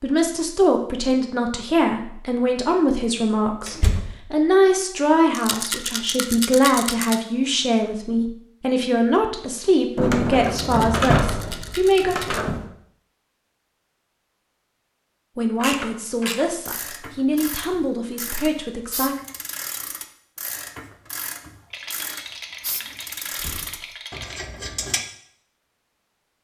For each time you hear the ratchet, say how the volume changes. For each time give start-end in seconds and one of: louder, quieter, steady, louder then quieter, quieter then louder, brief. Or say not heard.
15.6-25.1 steady.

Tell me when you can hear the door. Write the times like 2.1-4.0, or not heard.
3.6-4.2, 9.9-12.7, 23.3-23.9.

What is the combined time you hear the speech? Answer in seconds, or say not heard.
16 s.